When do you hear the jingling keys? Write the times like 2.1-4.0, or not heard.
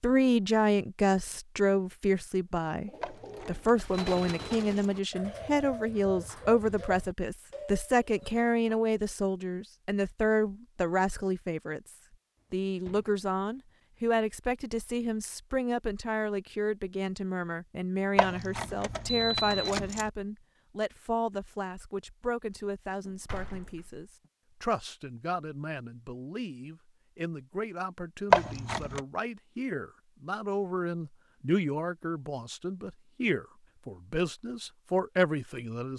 3.0-4.8, 18.1-20.1, 28.3-29.0.